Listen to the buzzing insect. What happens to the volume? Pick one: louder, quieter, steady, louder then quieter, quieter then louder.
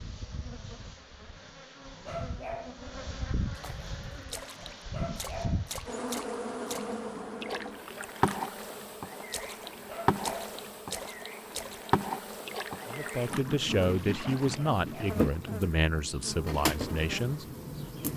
louder.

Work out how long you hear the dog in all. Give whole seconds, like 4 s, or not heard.
3 s.